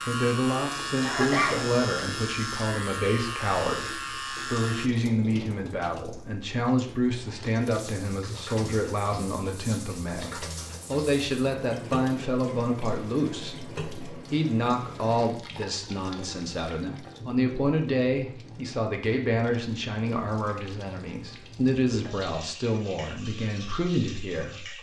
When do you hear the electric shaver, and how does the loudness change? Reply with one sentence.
You can hear the electric shaver from 0.0 to 4.9 s, at a steady volume.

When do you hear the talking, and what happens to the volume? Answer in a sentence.
You can hear the talking from 0.1 to 24.7 s, at a steady volume.